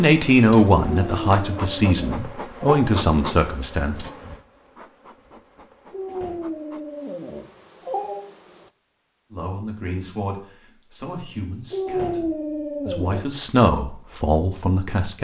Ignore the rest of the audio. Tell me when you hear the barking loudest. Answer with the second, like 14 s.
12 s.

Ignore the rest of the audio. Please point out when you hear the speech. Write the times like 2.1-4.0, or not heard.
0.0-4.0, 9.3-15.1.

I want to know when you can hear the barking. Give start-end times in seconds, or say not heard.
0.8-2.6, 5.9-8.2, 11.7-13.2.